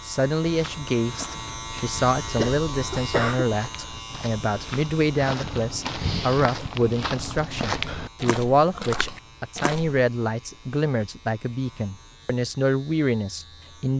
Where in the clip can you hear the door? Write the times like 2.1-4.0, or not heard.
not heard.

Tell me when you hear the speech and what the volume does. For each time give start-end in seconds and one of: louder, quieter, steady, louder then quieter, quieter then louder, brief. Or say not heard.
0.1-13.9 steady.